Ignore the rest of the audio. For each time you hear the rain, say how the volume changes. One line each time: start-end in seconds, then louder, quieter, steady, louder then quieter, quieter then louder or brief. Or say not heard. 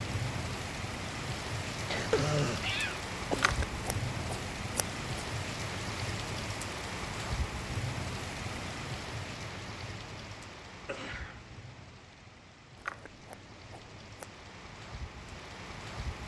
0.0-16.2 quieter.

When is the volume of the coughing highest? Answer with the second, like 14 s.
2 s.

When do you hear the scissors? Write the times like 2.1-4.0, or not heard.
3.3-5.0, 12.8-14.4.